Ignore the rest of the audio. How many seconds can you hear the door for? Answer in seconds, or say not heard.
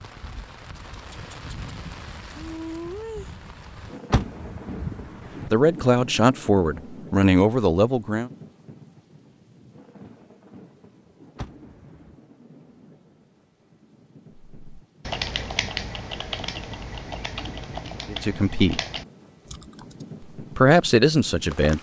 2 s.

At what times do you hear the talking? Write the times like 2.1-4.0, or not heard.
5.5-8.3, 18.1-18.8, 20.6-21.7.